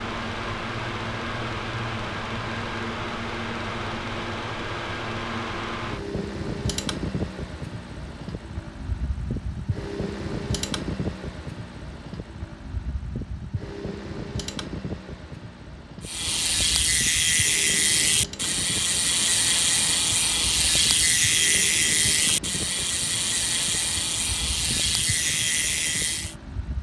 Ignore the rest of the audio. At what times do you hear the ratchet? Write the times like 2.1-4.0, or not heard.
16.0-26.4.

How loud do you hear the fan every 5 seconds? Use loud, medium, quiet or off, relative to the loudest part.
loud, loud, loud, medium, medium, medium.